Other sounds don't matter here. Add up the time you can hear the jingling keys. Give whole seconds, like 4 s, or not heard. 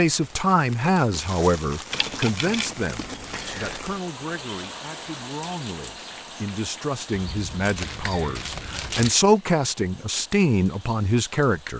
4 s.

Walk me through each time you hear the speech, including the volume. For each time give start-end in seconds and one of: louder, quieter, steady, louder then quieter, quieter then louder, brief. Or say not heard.
0.0-11.7 quieter then louder.